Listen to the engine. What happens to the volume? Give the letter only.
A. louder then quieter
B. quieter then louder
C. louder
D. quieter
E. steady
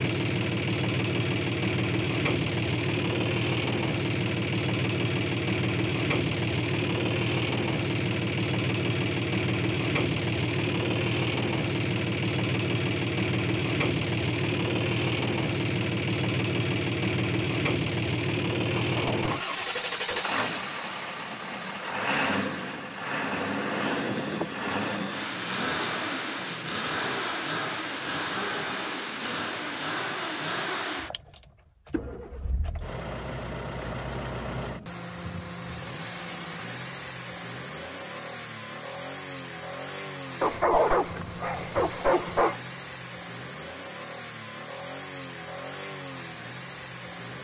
D.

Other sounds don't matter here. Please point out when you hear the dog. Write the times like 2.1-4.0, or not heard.
18.8-20.3, 40.4-42.5.